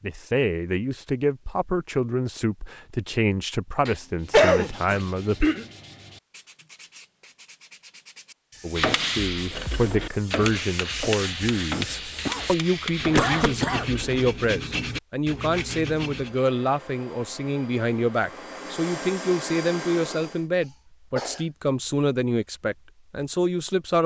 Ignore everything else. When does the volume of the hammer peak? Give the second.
9 s.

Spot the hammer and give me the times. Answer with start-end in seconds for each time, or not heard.
8.8-14.3.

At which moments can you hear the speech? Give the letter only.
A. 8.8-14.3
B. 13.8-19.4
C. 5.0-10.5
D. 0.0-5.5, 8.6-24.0
D.